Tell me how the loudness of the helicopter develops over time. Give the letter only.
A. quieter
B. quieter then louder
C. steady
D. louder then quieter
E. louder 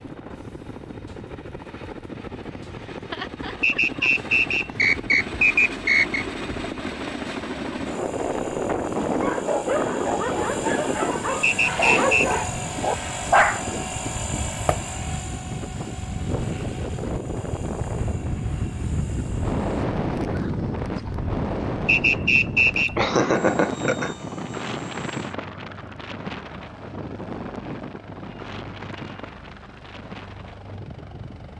D.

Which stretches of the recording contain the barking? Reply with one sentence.
You can hear the barking from 8.9 to 14.9 s.